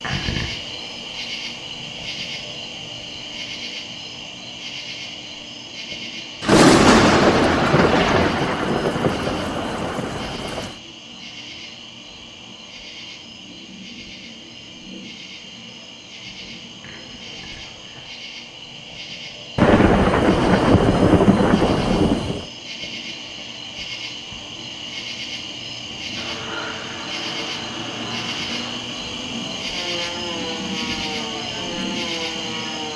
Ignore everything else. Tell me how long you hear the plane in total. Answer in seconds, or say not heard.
7 s.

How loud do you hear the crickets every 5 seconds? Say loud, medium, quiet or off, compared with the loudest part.
loud, medium, medium, medium, medium, loud, loud.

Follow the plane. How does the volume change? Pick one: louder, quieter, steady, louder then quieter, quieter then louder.
steady.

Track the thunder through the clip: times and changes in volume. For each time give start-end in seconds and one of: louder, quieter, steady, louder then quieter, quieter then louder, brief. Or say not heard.
6.4-10.8 quieter
19.6-22.4 brief.